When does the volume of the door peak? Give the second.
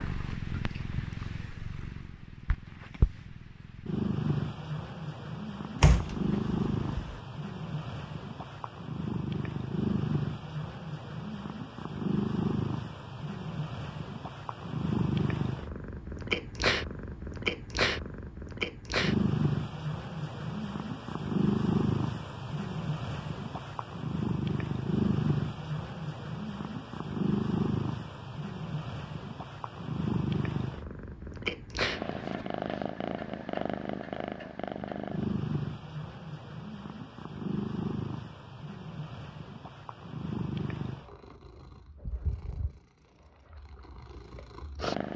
6 s.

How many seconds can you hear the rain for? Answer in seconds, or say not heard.
not heard.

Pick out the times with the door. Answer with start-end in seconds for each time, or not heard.
5.8-7.2.